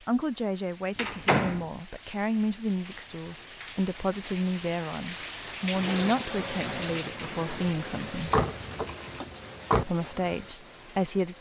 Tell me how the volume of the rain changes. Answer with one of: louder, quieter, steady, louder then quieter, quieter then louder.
louder then quieter.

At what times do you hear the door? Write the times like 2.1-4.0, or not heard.
0.9-1.6, 8.2-9.8.